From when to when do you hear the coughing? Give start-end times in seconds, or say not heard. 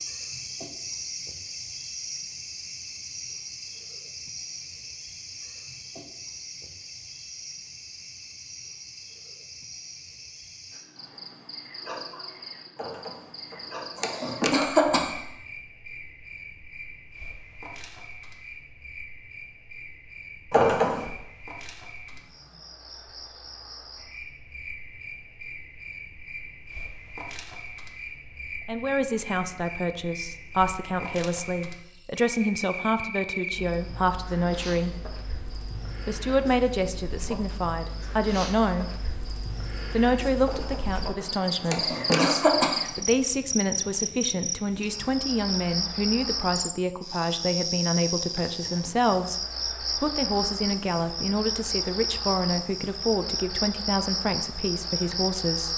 12.8-15.2, 20.5-21.1, 40.5-42.9.